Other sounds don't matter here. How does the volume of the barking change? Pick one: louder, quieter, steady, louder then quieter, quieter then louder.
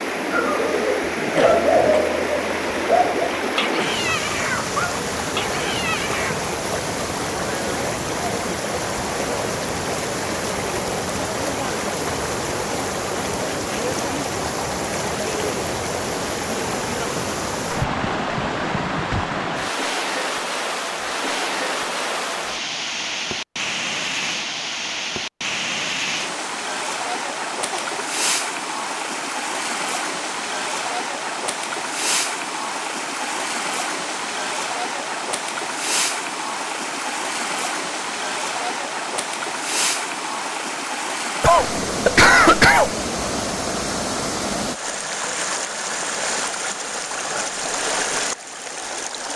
quieter.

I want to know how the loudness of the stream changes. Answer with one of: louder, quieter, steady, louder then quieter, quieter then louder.
steady.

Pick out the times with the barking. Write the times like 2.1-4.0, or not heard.
0.3-6.3.